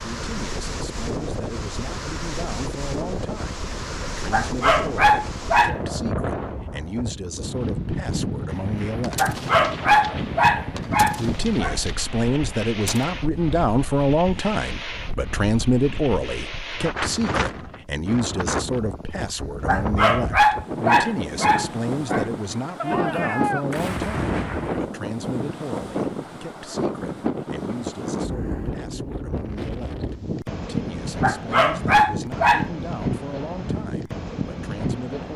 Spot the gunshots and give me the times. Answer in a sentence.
The gunshots can be heard from 8.5 to 13.1 s and from 22.8 to 24.8 s.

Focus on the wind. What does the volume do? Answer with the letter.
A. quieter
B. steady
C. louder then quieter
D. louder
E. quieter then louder
B.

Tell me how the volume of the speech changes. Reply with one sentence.
The loudness of the speech goes up, then down.